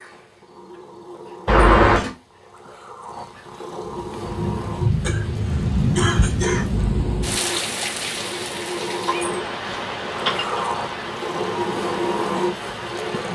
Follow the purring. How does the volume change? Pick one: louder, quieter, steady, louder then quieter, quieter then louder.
louder.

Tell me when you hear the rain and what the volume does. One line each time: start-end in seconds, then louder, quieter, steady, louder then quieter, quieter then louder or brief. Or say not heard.
3.9-13.3 quieter.